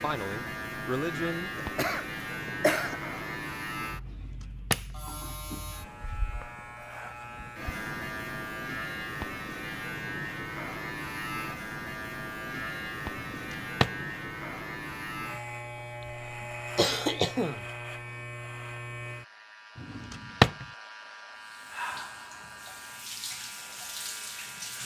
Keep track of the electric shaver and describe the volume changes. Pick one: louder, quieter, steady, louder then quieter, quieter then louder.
quieter.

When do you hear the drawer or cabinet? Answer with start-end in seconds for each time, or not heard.
4.0-5.0, 13.2-14.1, 19.8-20.6.